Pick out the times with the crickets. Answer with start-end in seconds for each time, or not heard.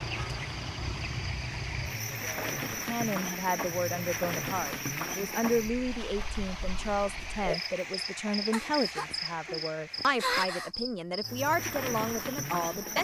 0.0-13.0.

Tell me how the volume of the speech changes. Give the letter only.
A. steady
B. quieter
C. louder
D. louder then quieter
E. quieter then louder
A.